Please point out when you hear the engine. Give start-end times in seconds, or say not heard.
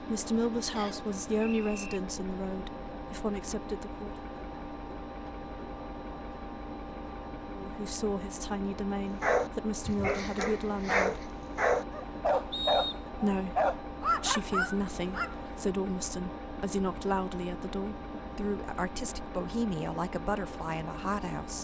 0.0-21.5.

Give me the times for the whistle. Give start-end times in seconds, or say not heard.
0.8-2.0, 12.5-13.0.